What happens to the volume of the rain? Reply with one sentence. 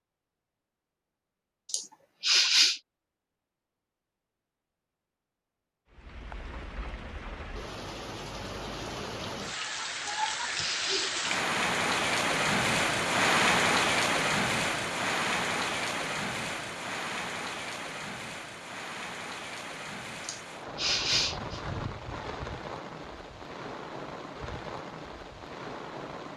The volume of the rain goes up, then down.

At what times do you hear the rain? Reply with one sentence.
The rain can be heard from 5.9 to 26.3 s.